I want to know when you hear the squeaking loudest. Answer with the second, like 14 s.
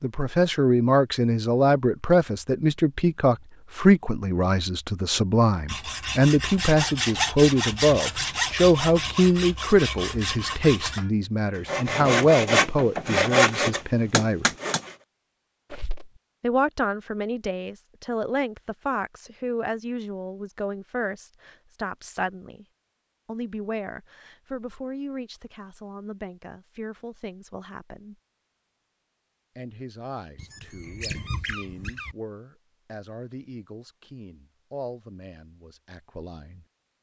31 s.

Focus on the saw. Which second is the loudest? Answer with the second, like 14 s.
13 s.